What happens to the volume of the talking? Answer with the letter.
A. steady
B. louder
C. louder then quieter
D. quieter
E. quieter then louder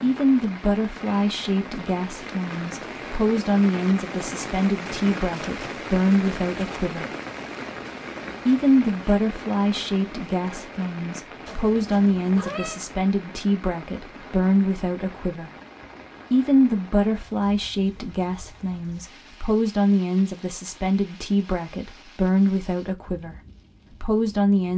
A.